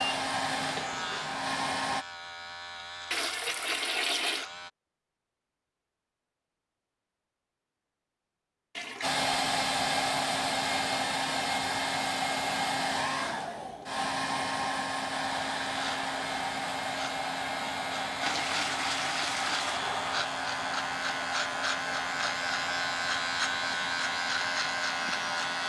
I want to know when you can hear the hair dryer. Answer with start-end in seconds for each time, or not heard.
0.0-2.0, 9.0-25.6.